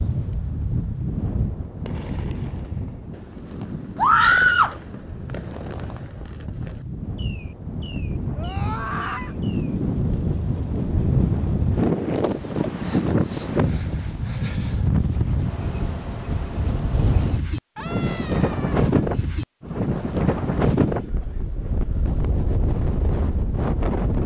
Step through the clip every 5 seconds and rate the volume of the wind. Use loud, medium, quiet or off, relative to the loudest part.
medium, medium, loud, loud, loud.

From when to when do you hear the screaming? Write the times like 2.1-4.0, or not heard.
4.0-4.8, 8.3-9.3, 17.8-18.9.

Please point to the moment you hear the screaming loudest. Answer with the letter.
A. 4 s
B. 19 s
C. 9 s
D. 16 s
A.